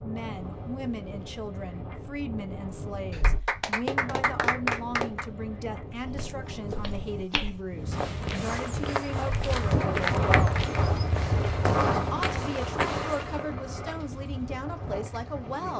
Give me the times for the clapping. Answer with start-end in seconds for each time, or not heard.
3.1-5.2, 9.2-10.9.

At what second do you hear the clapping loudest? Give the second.
5 s.